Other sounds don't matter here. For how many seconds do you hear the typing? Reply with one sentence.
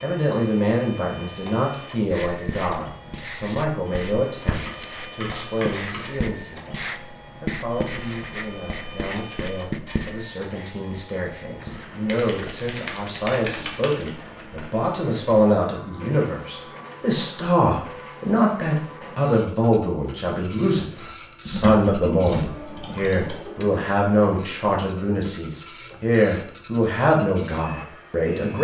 The typing can be heard for 6 seconds in total.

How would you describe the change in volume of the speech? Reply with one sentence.
The loudness of the speech goes down, then up.